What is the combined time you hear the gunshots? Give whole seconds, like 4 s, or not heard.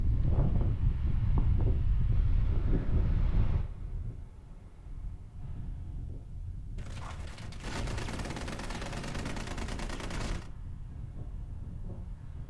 4 s.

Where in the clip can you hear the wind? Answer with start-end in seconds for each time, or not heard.
0.0-12.4.